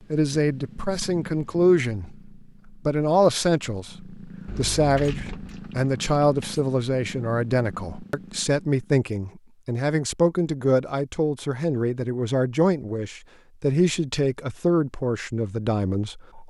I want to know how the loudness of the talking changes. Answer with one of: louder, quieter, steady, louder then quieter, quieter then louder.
steady.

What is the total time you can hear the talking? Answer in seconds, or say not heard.
16 s.